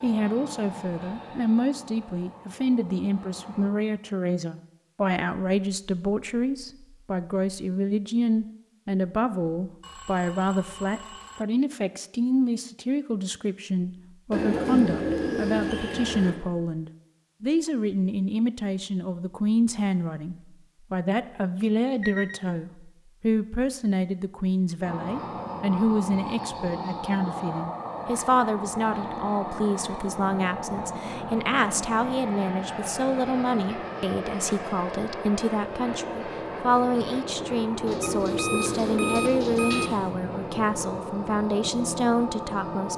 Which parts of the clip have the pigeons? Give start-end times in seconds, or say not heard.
14.3-16.3, 37.9-39.9.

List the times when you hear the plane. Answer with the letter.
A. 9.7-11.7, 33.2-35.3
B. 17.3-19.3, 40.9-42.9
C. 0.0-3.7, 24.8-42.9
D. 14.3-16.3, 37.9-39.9
C.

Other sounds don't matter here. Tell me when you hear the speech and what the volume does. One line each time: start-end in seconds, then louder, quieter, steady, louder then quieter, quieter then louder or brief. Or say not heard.
0.0-42.9 steady.